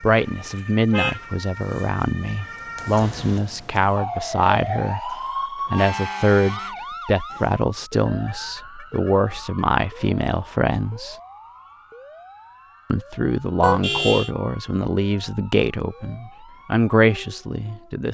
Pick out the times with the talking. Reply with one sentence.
You can hear the talking from 0.0 to 11.2 s and from 12.9 to 18.0 s.